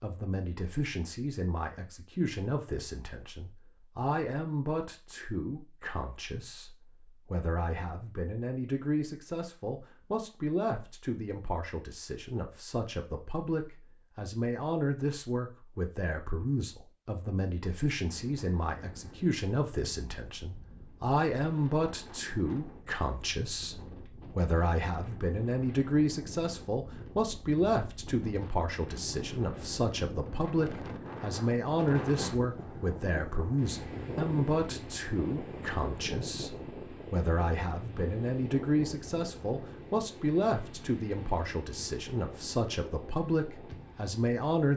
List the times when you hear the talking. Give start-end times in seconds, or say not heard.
0.0-44.7.